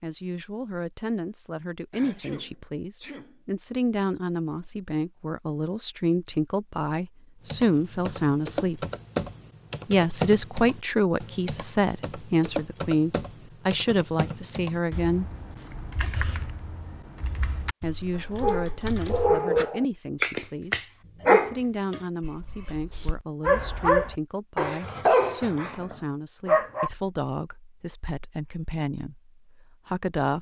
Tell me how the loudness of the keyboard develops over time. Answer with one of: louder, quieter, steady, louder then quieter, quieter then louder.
quieter.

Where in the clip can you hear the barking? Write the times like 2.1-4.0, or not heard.
18.4-26.9.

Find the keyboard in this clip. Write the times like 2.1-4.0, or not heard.
7.5-19.4.